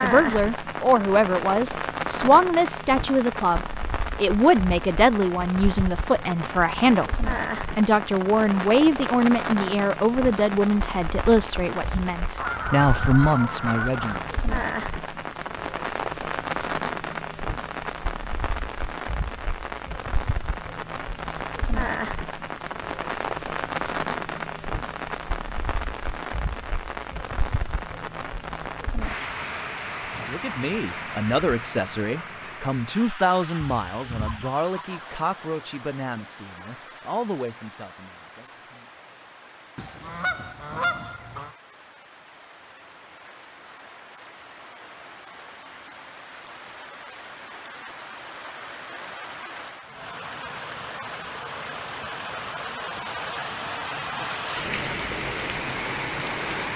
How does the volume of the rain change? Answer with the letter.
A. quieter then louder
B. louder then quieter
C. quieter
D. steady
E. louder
A.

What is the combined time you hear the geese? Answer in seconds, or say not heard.
5 s.